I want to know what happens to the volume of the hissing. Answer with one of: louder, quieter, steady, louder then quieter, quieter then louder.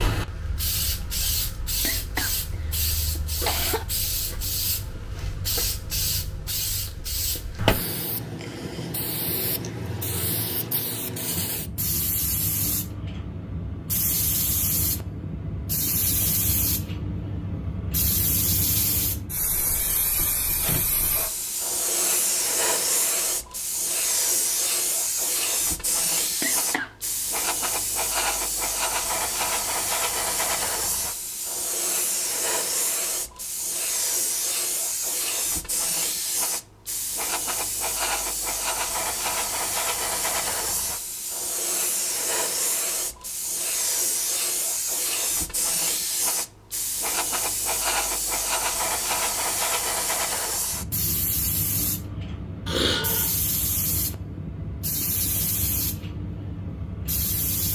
steady.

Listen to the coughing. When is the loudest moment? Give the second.
53 s.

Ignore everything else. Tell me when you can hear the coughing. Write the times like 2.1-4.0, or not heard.
1.9-2.4, 3.1-3.9, 26.4-26.9, 52.6-53.3.